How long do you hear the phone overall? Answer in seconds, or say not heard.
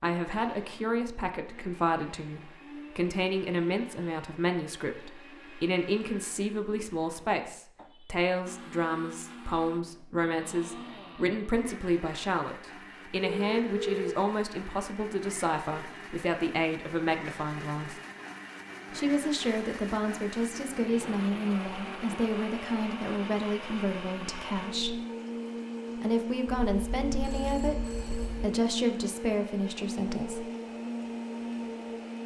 3 s.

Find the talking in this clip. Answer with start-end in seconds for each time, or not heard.
0.0-17.9, 18.9-25.0, 25.9-30.4.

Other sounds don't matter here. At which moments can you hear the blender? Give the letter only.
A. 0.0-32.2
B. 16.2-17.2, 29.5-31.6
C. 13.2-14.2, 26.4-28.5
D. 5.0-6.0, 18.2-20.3
A.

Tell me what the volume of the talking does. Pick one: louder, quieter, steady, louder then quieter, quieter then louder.
steady.